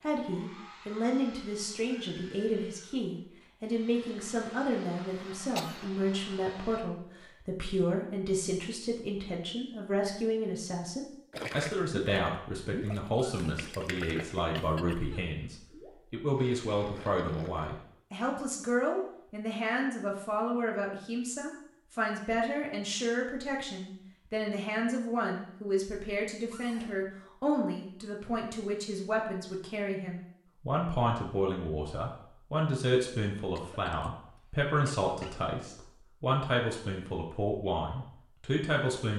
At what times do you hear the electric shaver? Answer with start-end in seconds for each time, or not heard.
not heard.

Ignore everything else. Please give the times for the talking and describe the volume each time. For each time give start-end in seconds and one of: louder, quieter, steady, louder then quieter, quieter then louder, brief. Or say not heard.
0.0-39.1 steady.